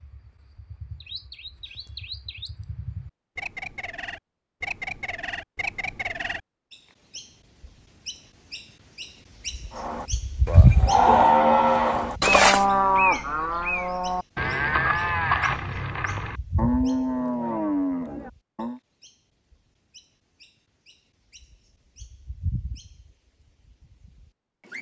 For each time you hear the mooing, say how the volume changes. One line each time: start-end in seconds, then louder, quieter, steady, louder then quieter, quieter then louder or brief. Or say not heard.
9.7-18.8 quieter.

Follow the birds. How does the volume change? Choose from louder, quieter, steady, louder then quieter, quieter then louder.
louder then quieter.